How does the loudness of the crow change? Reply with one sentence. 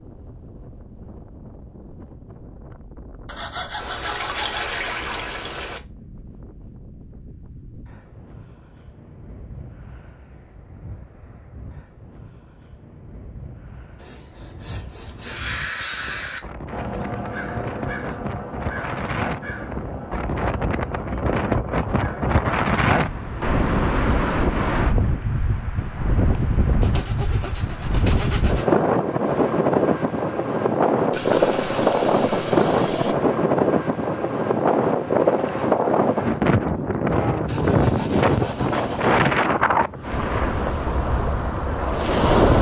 The volume of the crow goes down.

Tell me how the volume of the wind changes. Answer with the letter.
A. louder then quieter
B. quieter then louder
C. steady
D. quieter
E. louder
E.